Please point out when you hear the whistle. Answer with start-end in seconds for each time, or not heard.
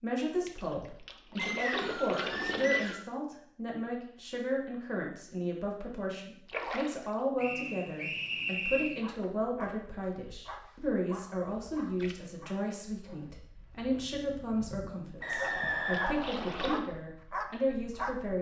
1.4-3.0, 7.3-9.0, 15.2-16.7.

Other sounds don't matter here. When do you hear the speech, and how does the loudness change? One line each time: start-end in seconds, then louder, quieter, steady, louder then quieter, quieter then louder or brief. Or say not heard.
0.0-18.3 steady.